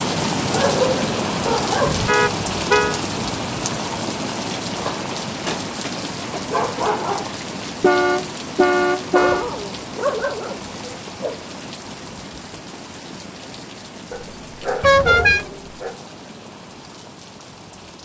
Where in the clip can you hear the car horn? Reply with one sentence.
You can hear the car horn from 1.9 to 3.0 s, from 7.8 to 9.4 s and from 14.8 to 15.4 s.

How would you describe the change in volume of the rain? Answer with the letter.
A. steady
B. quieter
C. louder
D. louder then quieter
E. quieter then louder
B.